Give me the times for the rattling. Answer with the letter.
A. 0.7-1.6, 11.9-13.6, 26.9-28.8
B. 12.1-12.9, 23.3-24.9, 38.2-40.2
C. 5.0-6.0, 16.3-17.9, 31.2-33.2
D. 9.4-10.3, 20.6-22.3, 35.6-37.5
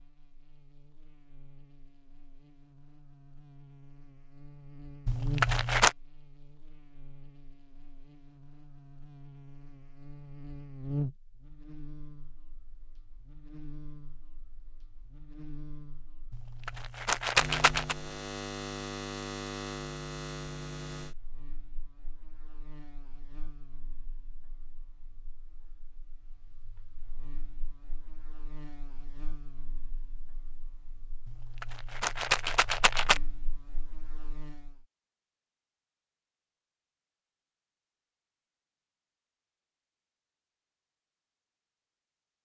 C.